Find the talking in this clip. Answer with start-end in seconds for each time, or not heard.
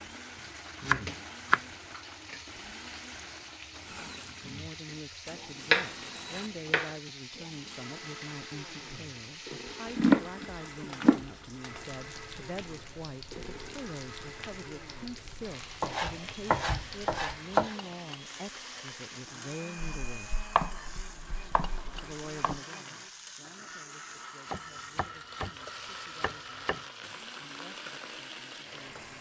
4.2-20.5, 21.9-29.1.